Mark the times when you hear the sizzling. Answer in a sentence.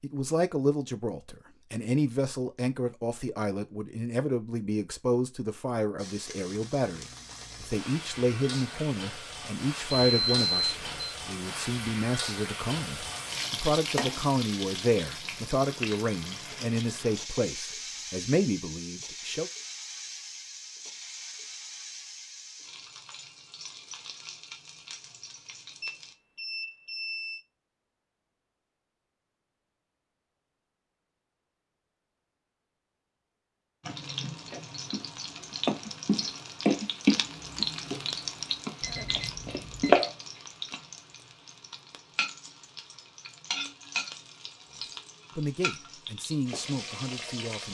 You can hear the sizzling from 6.0 to 26.1 s and from 33.8 to 47.6 s.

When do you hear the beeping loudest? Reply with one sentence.
The volume of the beeping peaks at 11 seconds.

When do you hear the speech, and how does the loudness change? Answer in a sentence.
The speech can be heard from 0.0 to 19.5 s, at a steady volume; and briefly from 45.4 to 47.6 s.